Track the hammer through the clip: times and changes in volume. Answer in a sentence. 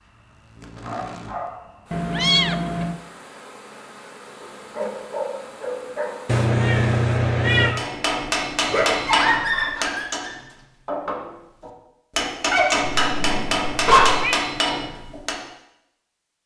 You can hear the hammer from 7.8 to 15.4 s, getting quieter then louder.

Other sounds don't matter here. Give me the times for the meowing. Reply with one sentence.
The meowing can be heard from 1.9 to 3.0 s, from 6.2 to 7.8 s and from 12.8 to 14.3 s.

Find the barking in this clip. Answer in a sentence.
The barking can be heard from 0.8 to 1.8 s, from 4.4 to 6.5 s, from 8.7 to 10.3 s and from 12.5 to 14.2 s.